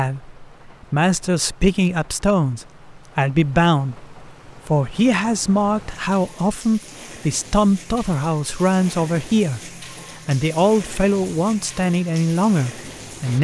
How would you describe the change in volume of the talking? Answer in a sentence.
The volume of the talking stays about the same.